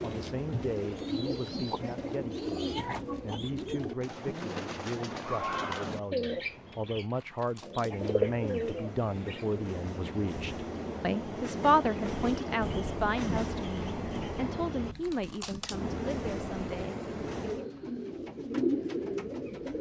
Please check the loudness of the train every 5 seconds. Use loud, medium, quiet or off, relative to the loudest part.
medium, medium, loud, loud.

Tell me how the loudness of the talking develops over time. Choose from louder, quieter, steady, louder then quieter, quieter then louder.
louder then quieter.